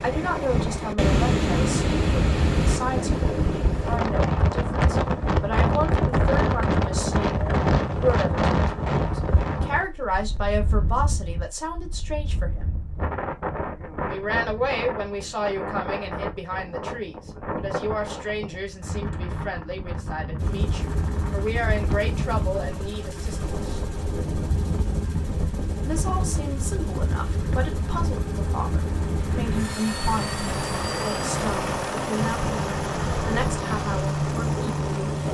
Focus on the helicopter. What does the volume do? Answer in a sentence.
The loudness of the helicopter goes up.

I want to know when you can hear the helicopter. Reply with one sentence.
The helicopter can be heard from 20.4 to 35.2 s.